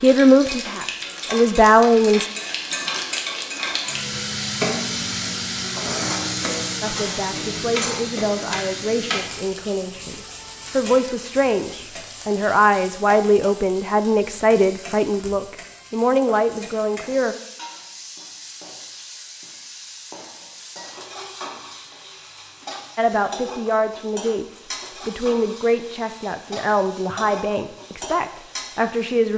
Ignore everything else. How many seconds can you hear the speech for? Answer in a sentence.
You can hear the speech for 19 seconds altogether.